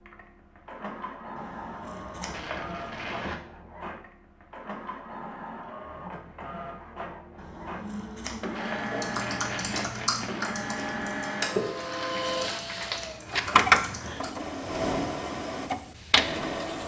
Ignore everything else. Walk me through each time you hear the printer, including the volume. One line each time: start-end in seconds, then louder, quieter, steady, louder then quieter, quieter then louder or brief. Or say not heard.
0.0-16.8 louder.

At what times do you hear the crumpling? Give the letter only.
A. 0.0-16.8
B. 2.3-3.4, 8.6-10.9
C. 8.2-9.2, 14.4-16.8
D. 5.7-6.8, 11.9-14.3
B.